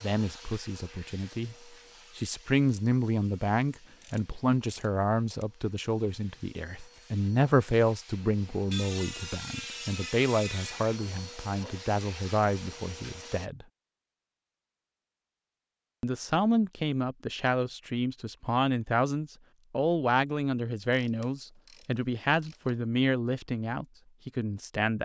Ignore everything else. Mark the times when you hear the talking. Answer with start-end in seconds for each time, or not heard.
0.0-1.6, 2.1-13.7, 16.0-25.0.